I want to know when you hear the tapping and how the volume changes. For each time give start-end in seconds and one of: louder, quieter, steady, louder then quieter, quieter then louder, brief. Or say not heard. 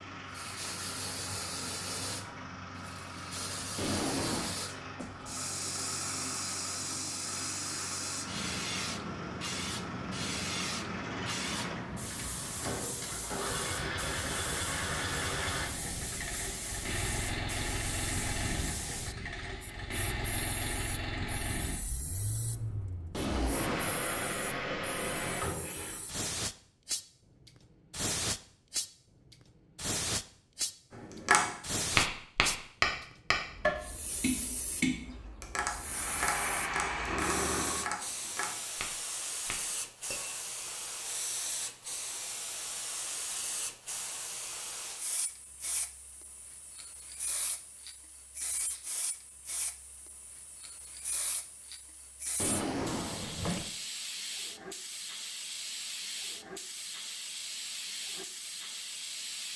30.9-40.7 quieter.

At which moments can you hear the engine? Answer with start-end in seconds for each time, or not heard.
0.0-26.1, 35.8-38.0.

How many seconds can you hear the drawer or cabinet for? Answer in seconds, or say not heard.
3 s.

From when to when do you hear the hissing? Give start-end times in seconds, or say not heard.
0.1-59.5.